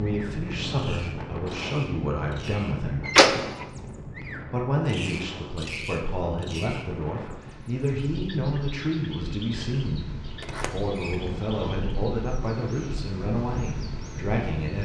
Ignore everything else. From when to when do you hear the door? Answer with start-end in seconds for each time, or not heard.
3.0-3.6, 10.4-11.5.